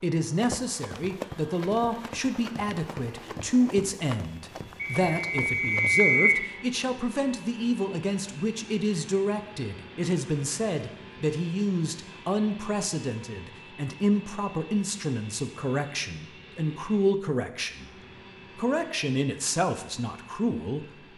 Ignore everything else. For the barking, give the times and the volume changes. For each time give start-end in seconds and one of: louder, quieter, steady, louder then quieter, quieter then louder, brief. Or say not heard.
not heard.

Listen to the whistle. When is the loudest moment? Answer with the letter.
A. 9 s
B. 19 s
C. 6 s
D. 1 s
C.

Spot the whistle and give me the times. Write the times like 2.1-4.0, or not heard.
4.8-6.5.